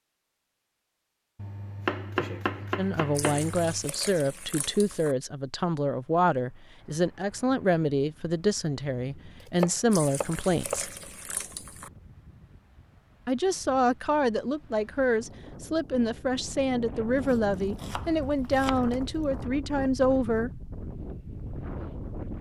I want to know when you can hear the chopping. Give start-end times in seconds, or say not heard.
1.4-3.9, 9.4-10.8, 17.2-18.8.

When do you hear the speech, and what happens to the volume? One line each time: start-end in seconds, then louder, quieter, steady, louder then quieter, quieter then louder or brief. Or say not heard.
2.8-10.9 steady
13.2-20.6 steady.